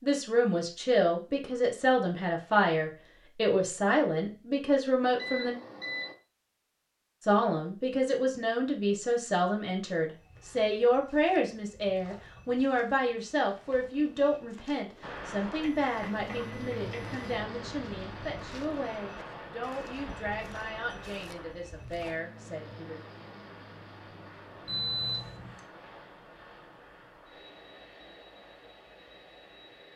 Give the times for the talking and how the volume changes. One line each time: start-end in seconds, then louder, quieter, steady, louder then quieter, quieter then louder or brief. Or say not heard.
0.0-5.5 steady
7.2-23.0 quieter.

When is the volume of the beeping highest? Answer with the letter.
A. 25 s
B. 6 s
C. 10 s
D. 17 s
A.